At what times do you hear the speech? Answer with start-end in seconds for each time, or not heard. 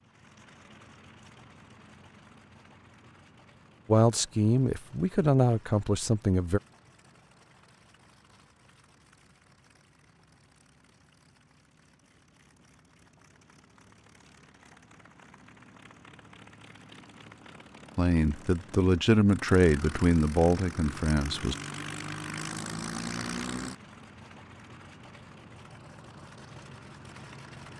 3.9-6.6, 17.9-21.6.